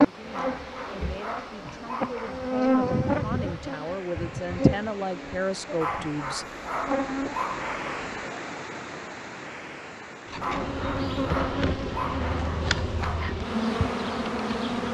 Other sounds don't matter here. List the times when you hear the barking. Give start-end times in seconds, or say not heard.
0.3-2.5, 5.8-8.1, 10.4-13.3.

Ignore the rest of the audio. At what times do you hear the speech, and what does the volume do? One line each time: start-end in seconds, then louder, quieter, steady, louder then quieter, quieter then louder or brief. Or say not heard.
0.0-6.5 louder.